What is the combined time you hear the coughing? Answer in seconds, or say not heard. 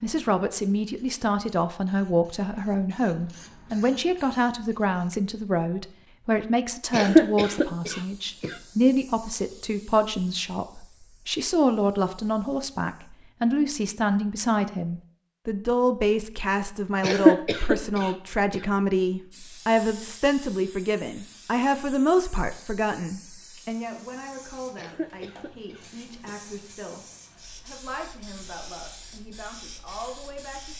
5 s.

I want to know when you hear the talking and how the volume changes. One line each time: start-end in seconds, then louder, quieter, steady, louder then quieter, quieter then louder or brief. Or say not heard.
0.0-30.7 quieter.